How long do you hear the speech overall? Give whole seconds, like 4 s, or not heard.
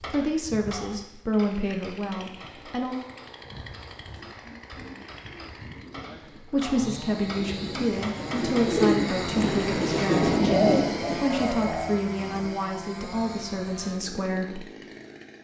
11 s.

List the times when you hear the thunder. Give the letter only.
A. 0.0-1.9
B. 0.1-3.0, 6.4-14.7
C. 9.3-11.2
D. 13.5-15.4
C.